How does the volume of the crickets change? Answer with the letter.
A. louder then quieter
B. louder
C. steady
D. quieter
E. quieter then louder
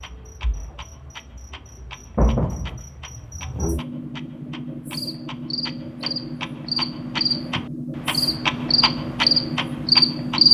B.